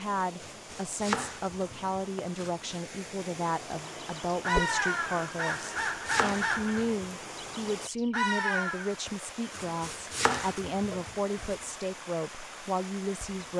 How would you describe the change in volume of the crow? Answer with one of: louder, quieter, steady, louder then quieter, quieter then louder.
quieter then louder.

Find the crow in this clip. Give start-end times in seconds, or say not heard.
3.9-9.0.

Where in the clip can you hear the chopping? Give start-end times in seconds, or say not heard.
0.4-2.9, 5.5-7.1, 9.5-11.6.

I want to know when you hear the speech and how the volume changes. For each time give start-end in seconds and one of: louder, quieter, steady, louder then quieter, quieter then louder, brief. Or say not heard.
0.0-13.5 steady.